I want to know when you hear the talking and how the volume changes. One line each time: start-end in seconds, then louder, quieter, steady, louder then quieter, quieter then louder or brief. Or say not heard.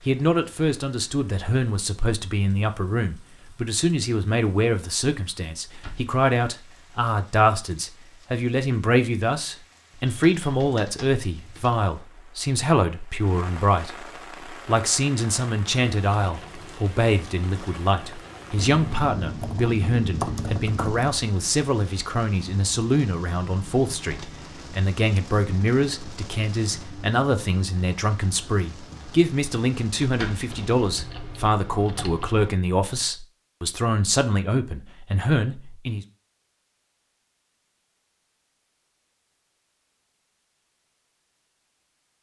0.0-36.0 steady.